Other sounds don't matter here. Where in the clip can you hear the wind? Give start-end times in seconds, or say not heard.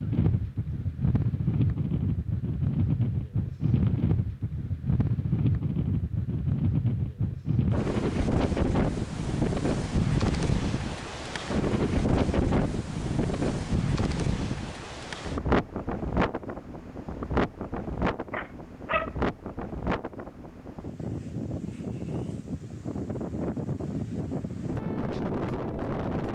0.0-26.3.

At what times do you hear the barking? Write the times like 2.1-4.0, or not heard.
18.3-19.1.